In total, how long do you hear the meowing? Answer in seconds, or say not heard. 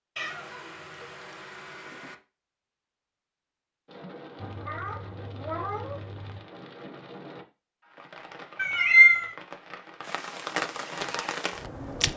5 s.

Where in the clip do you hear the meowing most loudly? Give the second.
9 s.